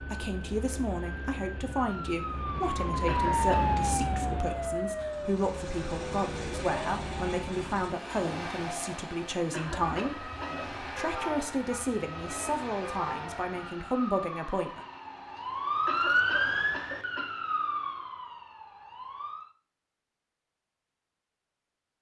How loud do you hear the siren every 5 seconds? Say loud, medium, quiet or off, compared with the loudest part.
loud, medium, medium, loud, off.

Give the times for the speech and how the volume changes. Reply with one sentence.
You can hear the speech from 0.1 to 14.8 s, at a steady volume.